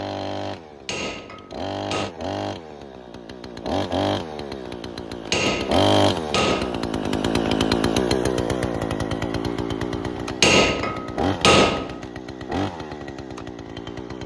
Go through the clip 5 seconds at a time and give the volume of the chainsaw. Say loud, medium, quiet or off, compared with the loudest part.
medium, loud, medium.